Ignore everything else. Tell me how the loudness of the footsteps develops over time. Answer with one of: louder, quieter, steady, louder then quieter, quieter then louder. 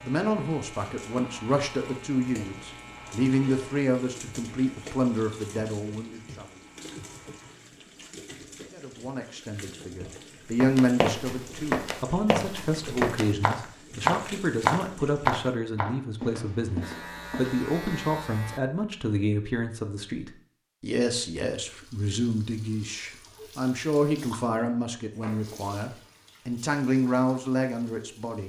louder then quieter.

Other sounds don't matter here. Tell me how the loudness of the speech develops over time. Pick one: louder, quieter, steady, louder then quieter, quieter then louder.
steady.